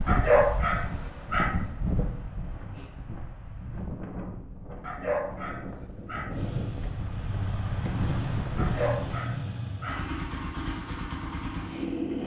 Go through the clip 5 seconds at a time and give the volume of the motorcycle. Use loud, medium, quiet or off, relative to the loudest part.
off, loud, loud.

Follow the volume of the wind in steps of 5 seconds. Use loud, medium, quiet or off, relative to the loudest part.
loud, loud, off.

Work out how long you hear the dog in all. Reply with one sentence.
You can hear the dog for 5 seconds altogether.